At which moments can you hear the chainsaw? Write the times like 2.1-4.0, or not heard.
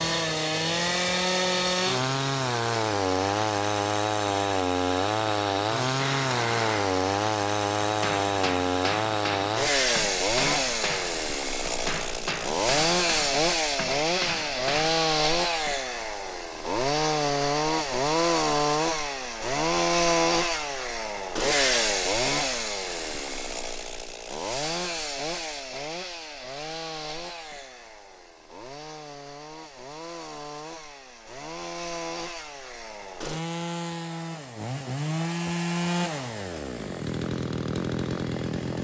0.0-38.7.